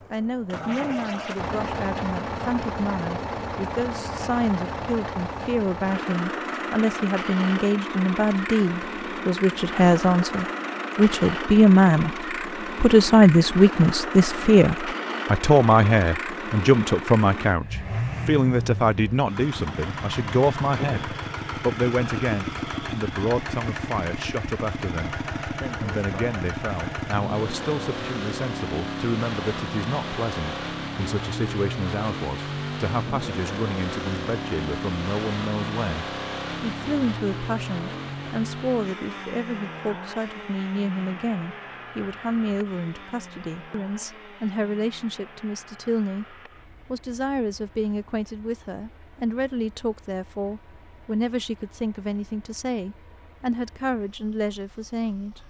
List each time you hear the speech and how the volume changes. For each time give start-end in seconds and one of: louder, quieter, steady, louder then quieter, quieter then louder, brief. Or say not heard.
0.1-12.2 louder
12.8-55.4 quieter.